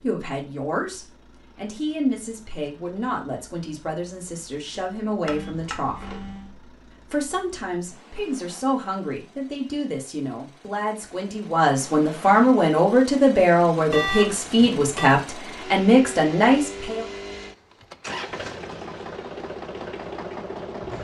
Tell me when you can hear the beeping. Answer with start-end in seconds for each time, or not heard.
5.2-6.5, 13.9-15.2.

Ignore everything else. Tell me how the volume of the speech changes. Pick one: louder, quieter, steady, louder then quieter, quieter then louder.
louder.